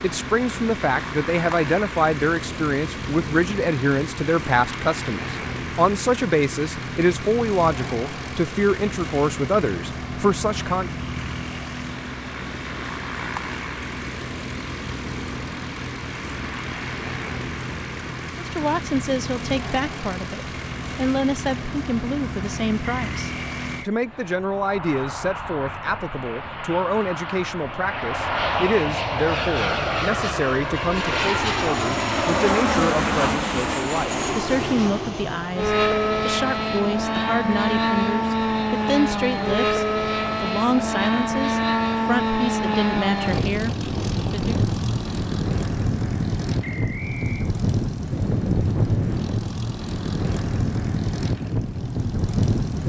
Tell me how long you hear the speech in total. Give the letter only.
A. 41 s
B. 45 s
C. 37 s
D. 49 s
C.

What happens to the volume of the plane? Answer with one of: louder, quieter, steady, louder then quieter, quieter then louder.
louder.